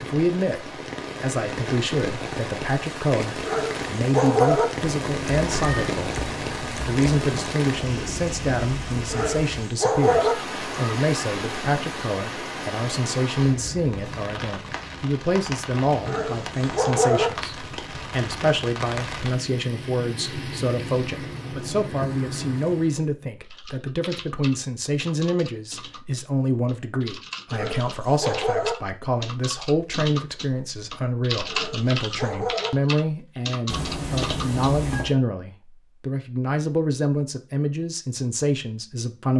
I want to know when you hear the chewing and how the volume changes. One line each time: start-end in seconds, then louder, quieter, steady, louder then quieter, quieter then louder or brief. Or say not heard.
not heard.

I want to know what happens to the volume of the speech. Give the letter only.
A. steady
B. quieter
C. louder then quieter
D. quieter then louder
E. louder
A.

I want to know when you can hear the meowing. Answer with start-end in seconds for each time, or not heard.
4.8-7.5, 33.6-35.1.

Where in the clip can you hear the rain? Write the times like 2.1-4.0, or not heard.
0.0-23.1.